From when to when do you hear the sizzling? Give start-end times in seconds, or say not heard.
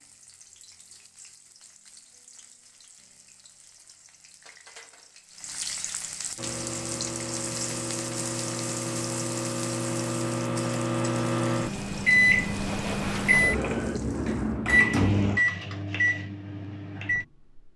0.0-14.6.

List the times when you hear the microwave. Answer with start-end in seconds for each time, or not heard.
6.3-17.7.